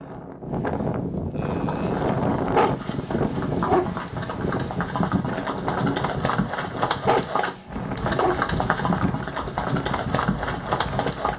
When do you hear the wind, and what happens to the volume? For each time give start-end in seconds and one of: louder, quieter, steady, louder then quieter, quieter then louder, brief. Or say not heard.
0.0-11.3 quieter.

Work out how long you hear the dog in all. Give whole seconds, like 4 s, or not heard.
3 s.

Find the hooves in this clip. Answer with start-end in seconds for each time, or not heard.
1.4-11.3.